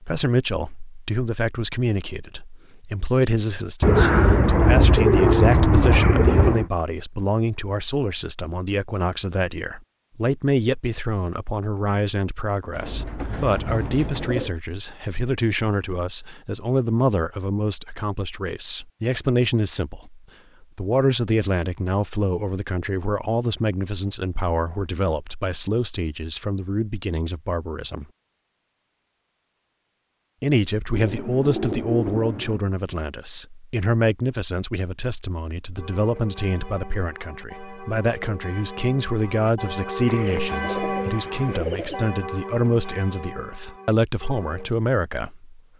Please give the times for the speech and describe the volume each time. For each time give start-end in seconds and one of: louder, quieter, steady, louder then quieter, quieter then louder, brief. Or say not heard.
0.0-28.1 steady
30.4-45.6 steady.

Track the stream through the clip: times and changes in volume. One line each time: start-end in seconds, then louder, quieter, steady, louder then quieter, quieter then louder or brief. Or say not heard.
not heard.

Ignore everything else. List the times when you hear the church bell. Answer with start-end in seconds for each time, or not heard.
35.8-44.8.